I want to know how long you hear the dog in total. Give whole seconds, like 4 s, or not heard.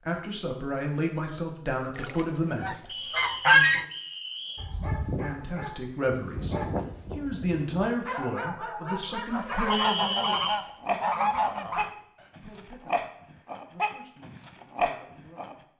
11 s.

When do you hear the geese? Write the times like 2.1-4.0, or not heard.
1.9-3.9, 9.3-11.9.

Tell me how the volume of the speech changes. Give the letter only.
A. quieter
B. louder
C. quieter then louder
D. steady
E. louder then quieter
A.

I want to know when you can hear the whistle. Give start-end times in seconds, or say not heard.
2.9-4.7, 9.7-10.6.